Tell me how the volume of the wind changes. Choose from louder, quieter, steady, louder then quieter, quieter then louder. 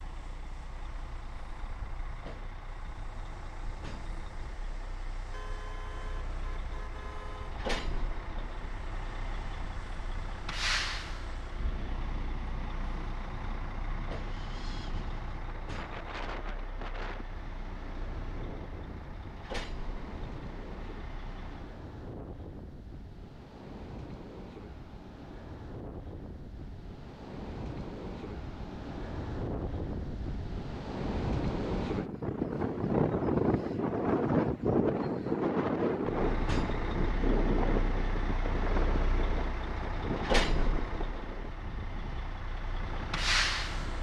louder.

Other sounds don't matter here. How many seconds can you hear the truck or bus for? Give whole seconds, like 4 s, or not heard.
30 s.